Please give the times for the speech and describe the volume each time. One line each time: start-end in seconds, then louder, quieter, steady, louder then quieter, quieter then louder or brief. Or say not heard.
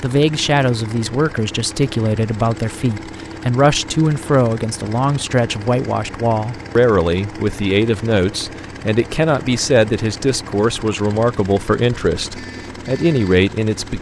0.0-13.9 steady.